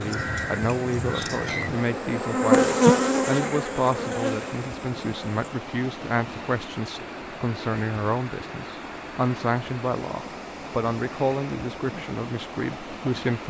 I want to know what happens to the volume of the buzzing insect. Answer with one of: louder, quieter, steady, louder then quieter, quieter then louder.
louder then quieter.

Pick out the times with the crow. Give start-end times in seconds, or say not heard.
0.0-1.8.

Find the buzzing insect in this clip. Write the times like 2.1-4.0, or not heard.
0.0-5.5.